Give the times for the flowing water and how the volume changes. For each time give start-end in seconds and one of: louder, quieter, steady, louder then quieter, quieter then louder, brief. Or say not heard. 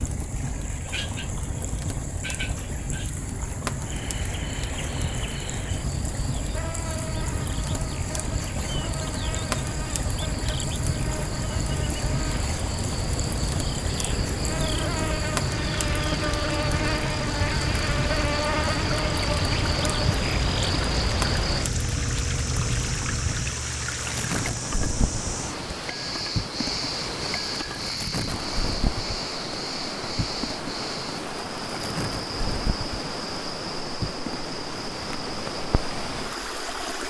0.0-37.0 louder.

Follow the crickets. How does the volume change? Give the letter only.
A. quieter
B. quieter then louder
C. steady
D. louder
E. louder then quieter
E.